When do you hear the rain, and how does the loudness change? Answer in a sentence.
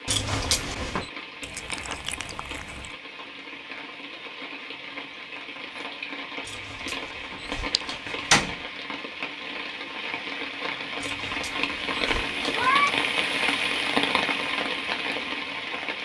You can hear the rain from 0.0 to 15.9 s, getting louder.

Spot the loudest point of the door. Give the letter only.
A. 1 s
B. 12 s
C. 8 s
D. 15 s
C.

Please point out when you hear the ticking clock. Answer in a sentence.
You can't hear the ticking clock here.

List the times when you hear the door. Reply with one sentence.
The door can be heard from 0.1 to 1.1 s, from 6.5 to 8.6 s and from 11.0 to 12.8 s.